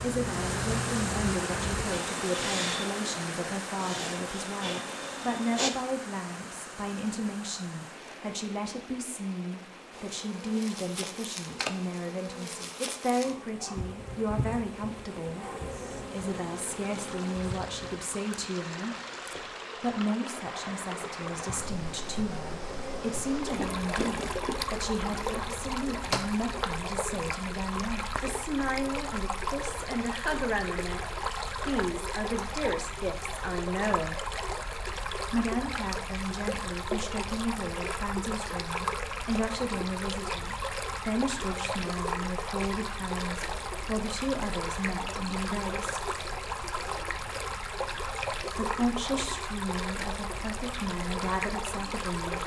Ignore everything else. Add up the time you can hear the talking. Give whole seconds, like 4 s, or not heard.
47 s.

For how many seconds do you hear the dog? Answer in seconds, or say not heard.
not heard.